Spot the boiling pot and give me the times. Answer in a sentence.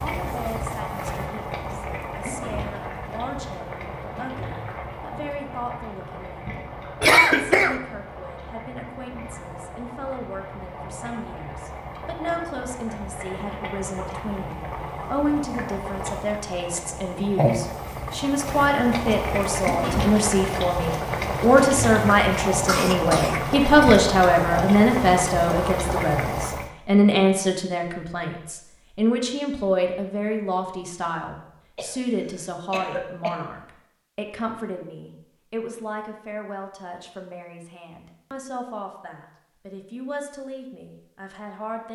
You can hear the boiling pot from 0.0 to 26.7 s.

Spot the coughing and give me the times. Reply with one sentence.
You can hear the coughing from 7.0 to 7.8 s, from 22.6 to 24.0 s and from 31.8 to 33.4 s.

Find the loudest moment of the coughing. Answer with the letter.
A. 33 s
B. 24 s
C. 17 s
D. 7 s
D.